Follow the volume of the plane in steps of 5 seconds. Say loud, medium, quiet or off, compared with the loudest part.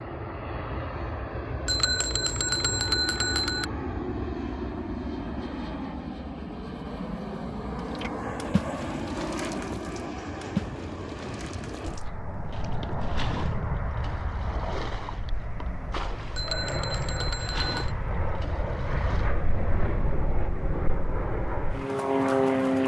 medium, medium, medium, medium, loud.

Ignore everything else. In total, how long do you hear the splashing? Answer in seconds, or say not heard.
11 s.